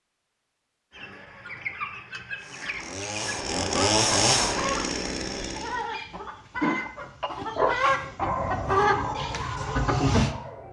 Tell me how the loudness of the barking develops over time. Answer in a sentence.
The volume of the barking goes down.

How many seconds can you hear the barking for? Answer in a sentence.
The barking can be heard for 4 seconds in total.